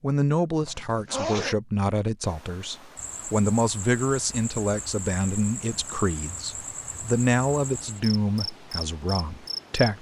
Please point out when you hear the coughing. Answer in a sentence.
You can't hear the coughing here.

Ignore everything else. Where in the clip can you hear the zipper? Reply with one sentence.
The zipper can be heard from 0.6 to 1.6 s.